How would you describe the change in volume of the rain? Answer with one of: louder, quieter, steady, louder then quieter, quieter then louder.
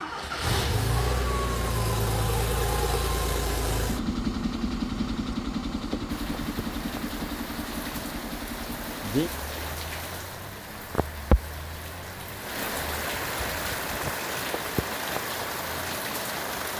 louder.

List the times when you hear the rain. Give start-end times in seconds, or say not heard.
6.0-16.7.